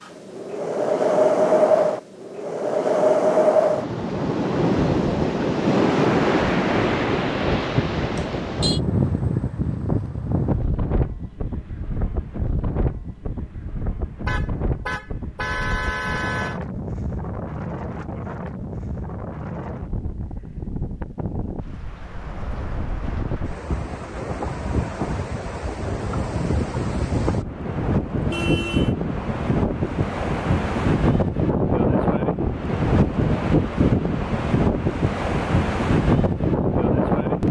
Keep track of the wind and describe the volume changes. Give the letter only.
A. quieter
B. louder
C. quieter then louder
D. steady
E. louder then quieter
C.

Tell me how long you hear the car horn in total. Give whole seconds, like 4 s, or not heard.
4 s.